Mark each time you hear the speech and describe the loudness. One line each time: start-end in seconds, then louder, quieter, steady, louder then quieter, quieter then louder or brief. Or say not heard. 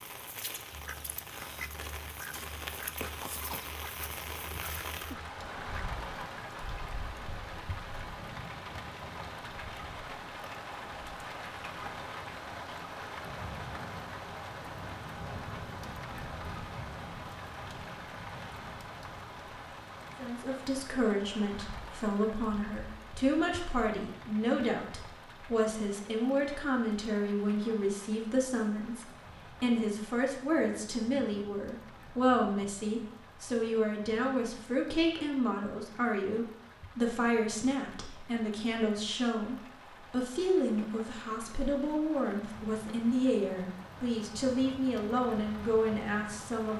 20.1-46.7 steady.